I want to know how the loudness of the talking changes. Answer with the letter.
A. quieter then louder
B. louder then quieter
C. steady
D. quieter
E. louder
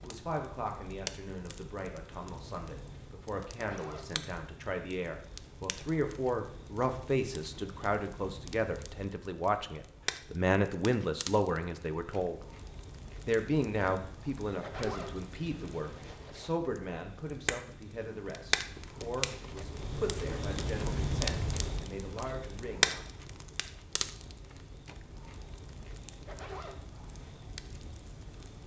B.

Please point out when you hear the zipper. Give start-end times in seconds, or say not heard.
3.5-4.2, 14.6-16.5, 26.2-26.9.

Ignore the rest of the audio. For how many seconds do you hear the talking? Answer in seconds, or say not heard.
22 s.